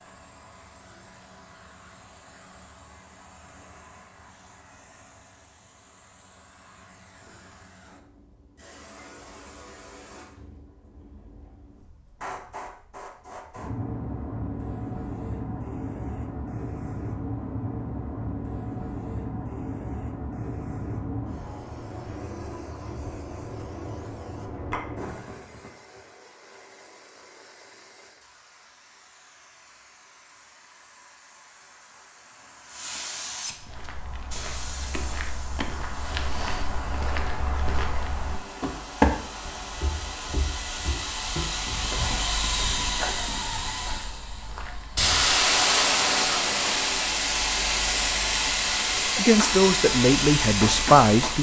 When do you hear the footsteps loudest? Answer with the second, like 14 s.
39 s.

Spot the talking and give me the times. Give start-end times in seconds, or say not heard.
49.0-51.3.